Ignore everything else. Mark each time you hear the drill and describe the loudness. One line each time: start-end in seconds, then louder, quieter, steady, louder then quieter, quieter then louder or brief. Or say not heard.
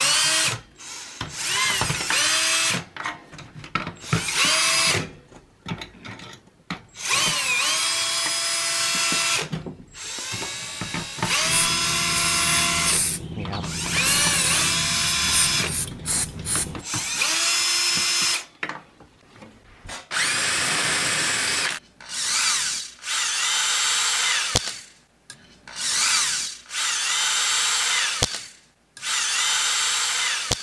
0.0-30.5 steady.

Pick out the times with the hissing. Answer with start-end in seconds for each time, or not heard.
10.6-16.9.